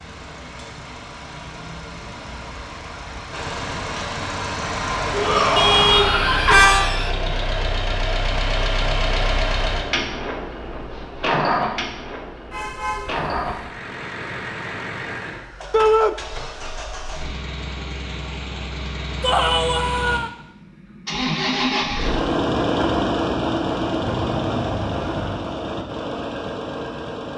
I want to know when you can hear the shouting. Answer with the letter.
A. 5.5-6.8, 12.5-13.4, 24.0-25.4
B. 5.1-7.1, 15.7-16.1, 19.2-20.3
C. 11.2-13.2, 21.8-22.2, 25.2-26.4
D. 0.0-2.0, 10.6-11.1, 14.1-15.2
B.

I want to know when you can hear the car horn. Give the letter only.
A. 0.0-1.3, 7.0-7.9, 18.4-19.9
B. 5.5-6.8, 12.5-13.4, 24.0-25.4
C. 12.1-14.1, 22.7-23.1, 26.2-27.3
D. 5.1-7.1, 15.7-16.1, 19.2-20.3
B.